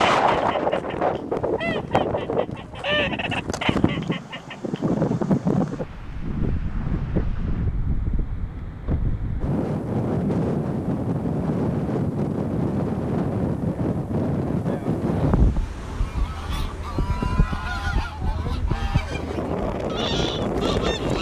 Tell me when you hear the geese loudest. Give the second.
3 s.